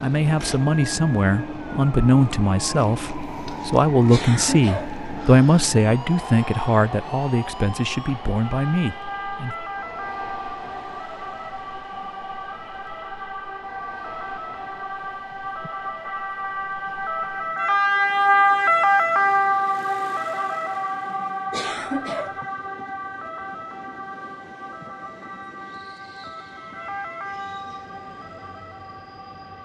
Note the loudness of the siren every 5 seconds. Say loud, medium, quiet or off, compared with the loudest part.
quiet, quiet, quiet, loud, medium, quiet.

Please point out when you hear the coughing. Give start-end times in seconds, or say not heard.
4.0-5.0, 21.5-22.4.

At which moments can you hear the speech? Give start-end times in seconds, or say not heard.
0.0-9.6.